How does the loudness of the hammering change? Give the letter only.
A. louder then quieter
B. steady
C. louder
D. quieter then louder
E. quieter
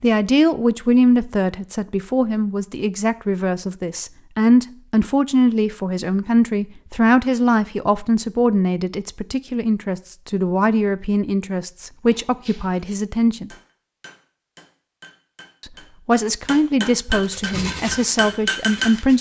C.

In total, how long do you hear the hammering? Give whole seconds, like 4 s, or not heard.
7 s.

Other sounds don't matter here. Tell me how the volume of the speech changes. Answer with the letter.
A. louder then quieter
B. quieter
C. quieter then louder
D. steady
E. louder
D.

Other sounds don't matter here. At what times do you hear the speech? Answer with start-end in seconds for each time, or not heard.
0.0-13.5, 15.6-19.1.